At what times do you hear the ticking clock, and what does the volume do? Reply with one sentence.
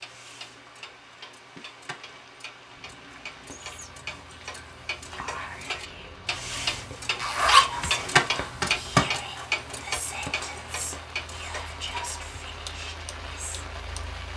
You can hear the ticking clock from 0.0 to 14.0 s, getting louder then quieter.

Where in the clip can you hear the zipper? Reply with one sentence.
The zipper can be heard from 7.2 to 9.2 s.